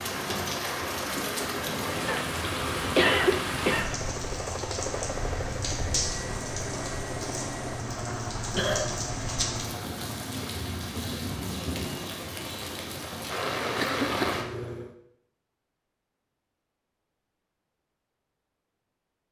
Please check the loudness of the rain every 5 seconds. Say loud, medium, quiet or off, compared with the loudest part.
loud, loud, loud, off.